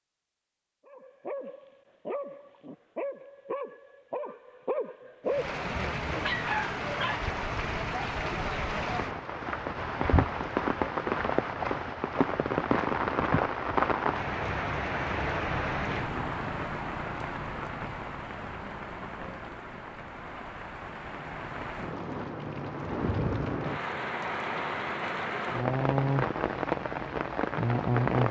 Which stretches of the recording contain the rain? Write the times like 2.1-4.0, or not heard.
5.2-28.2.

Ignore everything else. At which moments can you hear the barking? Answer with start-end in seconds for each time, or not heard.
0.8-7.3.